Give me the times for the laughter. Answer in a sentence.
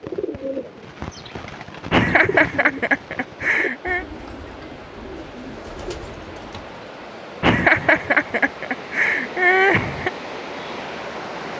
The laughter can be heard from 1.9 to 4.0 s and from 7.4 to 10.1 s.